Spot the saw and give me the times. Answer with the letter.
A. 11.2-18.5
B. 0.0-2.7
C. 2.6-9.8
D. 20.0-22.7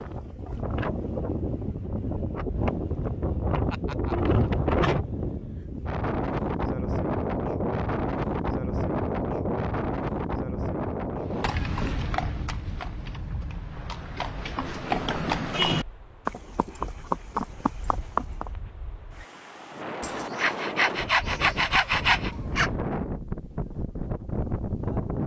D.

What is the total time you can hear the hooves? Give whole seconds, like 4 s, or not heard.
7 s.